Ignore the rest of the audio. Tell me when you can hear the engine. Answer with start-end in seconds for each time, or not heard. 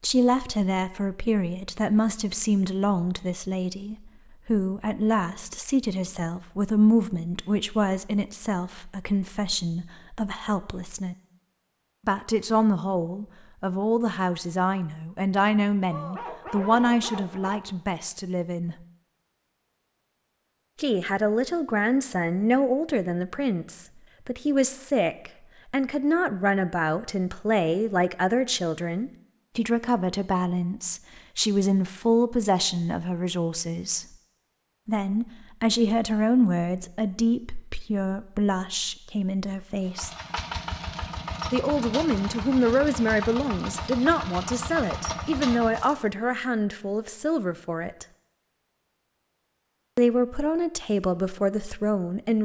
39.8-46.0.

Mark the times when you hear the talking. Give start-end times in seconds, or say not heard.
0.0-11.2, 12.1-18.8, 20.8-34.0, 34.9-40.1, 41.5-48.0, 50.0-52.3.